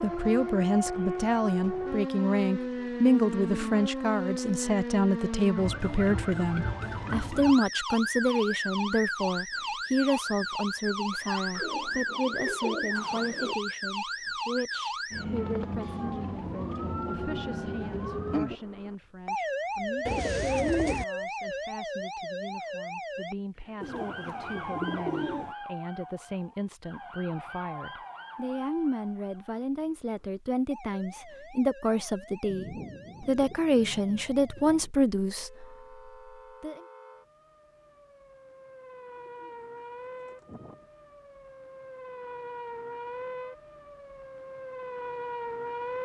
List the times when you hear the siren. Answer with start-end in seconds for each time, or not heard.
0.0-46.0.